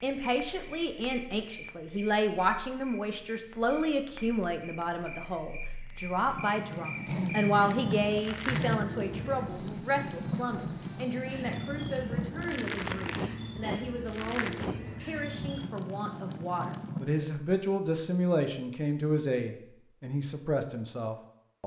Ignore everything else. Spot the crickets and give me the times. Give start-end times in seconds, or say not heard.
0.1-15.8.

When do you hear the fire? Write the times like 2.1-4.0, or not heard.
0.0-17.3.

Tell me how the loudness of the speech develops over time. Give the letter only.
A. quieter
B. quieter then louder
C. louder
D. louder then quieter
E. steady
B.